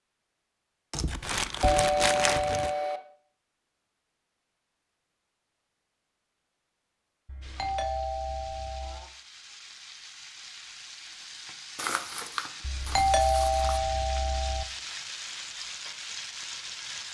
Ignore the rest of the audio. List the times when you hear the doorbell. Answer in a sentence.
You can hear the doorbell from 1.6 to 3.0 s, from 7.2 to 9.1 s and from 12.7 to 14.7 s.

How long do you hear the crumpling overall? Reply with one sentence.
The crumpling can be heard for 4 seconds in total.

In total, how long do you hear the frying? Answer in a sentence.
You can hear the frying for 10 seconds altogether.